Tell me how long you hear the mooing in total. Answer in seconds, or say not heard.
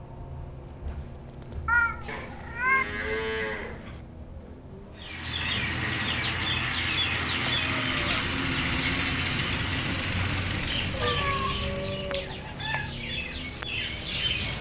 2 s.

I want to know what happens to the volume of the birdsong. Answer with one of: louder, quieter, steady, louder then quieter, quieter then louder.
quieter.